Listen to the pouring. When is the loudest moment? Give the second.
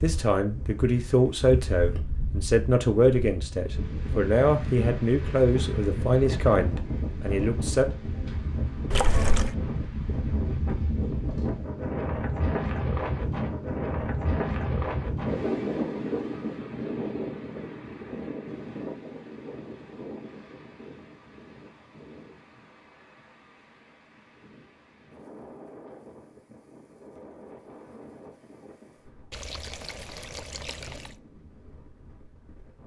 9 s.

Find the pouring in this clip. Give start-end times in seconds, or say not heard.
8.9-9.6, 29.3-31.1.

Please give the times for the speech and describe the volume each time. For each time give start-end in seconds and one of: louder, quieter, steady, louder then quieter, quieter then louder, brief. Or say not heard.
0.0-7.8 steady.